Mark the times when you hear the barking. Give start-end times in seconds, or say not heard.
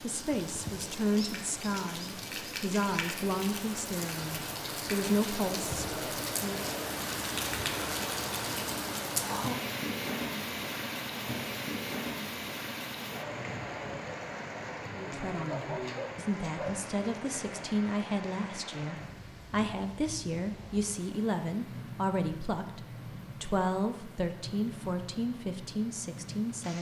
15.4-16.8.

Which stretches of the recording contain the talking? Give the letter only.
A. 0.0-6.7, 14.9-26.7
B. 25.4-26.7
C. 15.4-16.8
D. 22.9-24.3
A.